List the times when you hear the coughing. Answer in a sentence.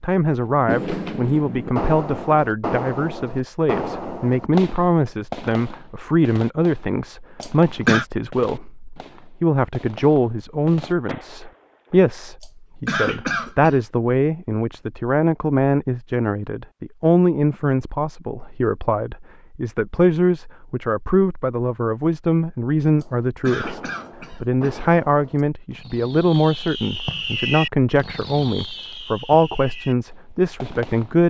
You can hear the coughing from 7.4 to 8.1 s, from 12.4 to 13.8 s and from 23.0 to 24.9 s.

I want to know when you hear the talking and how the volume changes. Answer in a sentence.
The talking can be heard from 0.0 to 31.2 s, at a steady volume.